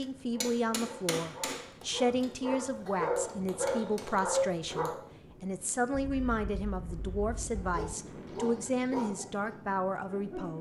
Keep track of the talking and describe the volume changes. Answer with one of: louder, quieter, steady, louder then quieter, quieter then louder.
steady.